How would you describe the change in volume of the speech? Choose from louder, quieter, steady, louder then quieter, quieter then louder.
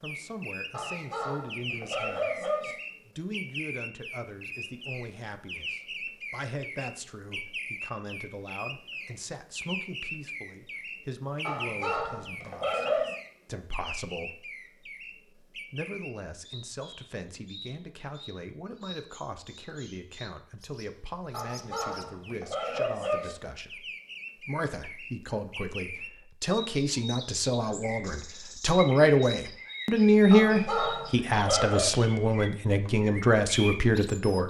louder.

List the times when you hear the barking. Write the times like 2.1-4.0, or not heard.
0.7-2.8, 11.4-13.2, 21.3-23.4, 30.3-31.9.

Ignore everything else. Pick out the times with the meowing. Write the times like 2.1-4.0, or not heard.
not heard.